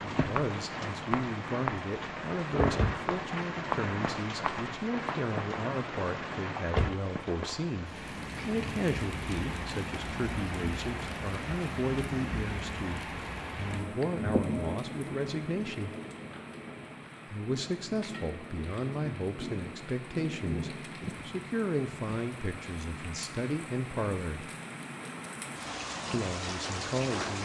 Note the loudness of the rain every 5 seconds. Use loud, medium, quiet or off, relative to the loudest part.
loud, loud, loud, medium, medium, loud.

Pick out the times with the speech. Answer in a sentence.
The speech can be heard from 0.0 to 15.9 s, from 17.2 to 24.4 s and from 26.1 to 27.4 s.